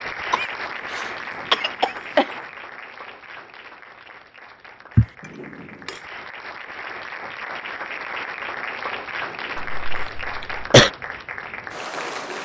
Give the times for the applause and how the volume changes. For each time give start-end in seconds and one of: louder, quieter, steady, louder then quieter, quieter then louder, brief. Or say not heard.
0.0-12.3 quieter then louder.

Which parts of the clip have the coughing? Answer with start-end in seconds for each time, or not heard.
0.3-2.3, 9.6-10.9.